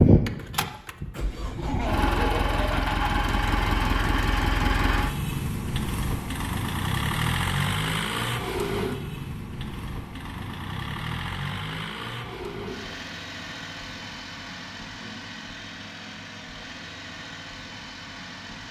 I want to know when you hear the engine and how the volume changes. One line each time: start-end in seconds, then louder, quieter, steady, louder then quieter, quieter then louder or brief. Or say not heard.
0.0-18.6 quieter.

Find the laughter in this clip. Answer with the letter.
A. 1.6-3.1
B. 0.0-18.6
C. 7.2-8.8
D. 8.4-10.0
A.